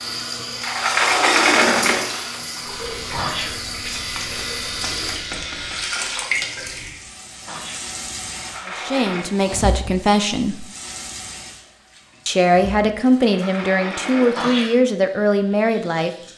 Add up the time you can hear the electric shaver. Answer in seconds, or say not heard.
3 s.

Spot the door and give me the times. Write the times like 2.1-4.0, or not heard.
0.6-2.4, 8.3-9.2, 13.2-14.4.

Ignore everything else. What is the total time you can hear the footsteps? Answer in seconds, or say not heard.
not heard.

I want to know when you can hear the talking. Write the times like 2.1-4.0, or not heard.
8.7-10.7, 12.2-16.1.